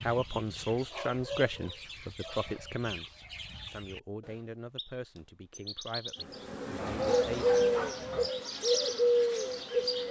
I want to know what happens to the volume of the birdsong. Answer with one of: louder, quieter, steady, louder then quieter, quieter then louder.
louder.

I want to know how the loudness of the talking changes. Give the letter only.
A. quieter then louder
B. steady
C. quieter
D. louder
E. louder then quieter
C.